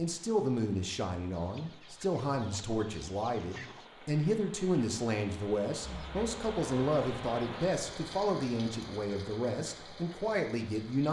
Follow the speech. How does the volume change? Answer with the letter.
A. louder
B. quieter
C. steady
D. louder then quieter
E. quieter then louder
C.